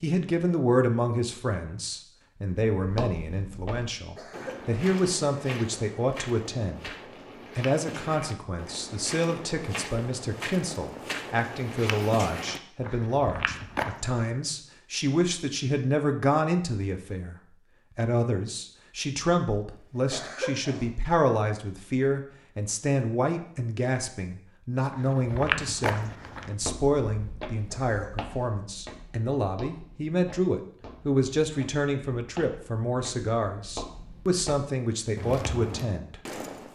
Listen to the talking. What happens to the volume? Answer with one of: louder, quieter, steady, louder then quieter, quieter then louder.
steady.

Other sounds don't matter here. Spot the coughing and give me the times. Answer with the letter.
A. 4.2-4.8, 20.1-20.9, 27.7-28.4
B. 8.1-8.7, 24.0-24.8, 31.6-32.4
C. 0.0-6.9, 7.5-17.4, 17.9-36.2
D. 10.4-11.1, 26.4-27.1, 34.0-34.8
A.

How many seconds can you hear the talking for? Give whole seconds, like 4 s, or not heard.
35 s.